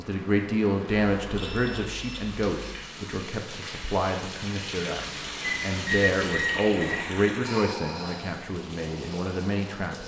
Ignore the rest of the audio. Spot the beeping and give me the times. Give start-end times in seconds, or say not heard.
0.8-2.5, 5.4-7.2.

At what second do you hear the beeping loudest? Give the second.
6 s.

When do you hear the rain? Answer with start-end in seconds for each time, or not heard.
0.0-10.0.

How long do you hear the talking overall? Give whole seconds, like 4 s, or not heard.
10 s.